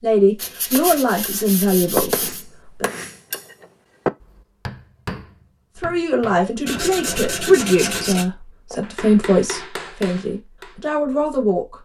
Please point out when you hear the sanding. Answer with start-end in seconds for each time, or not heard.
0.3-2.5, 6.7-8.2.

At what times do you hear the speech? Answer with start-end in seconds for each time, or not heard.
0.0-2.9, 5.8-11.7.